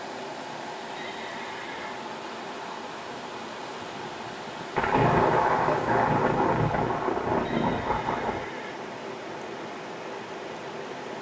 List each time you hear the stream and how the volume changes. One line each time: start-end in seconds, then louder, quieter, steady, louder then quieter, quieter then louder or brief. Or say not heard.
0.0-11.1 steady.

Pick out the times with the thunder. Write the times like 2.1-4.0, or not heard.
4.8-8.5.